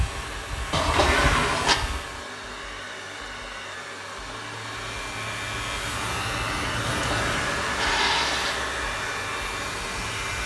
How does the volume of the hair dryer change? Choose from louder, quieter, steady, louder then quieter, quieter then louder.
louder.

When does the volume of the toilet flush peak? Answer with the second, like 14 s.
1 s.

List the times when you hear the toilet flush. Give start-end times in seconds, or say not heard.
0.7-1.8, 6.8-8.6.